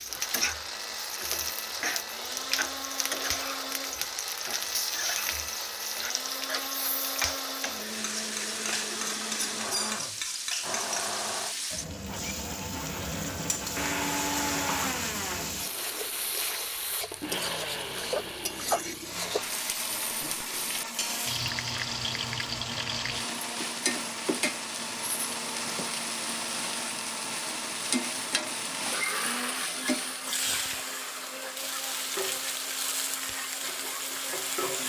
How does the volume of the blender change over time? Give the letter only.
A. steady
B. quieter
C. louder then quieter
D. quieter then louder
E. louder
A.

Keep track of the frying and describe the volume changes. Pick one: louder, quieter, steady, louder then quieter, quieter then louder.
steady.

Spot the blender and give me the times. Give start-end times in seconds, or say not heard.
0.0-34.8.